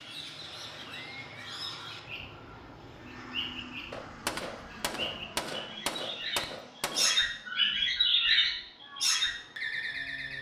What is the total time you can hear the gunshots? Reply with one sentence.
You can hear the gunshots for 3 seconds altogether.